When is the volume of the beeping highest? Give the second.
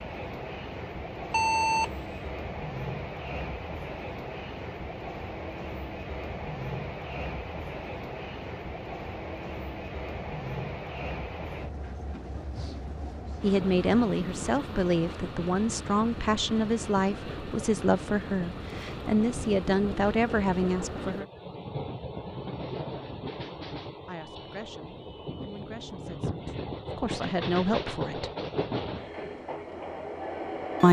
2 s.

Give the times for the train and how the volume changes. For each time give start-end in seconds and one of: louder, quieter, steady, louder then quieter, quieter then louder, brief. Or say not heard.
0.0-30.8 steady.